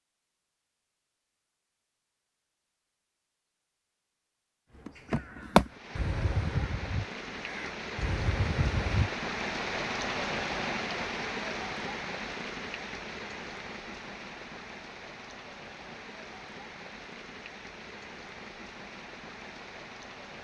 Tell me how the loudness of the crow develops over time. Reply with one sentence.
The volume of the crow goes down, then up.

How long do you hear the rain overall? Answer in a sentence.
The rain can be heard for 15 seconds in total.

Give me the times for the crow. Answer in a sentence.
The crow can be heard from 4.8 to 9.1 s.